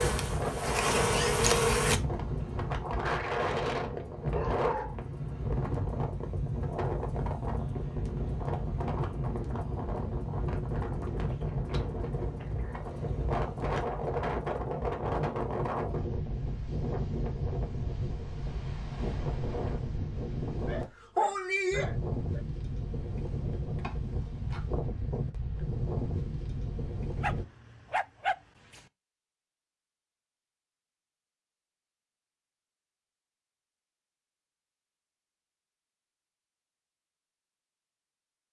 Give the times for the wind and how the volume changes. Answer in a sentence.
The wind can be heard from 0.0 to 27.4 s, at a steady volume.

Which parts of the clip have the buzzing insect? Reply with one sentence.
You can hear the buzzing insect from 0.0 to 2.0 s.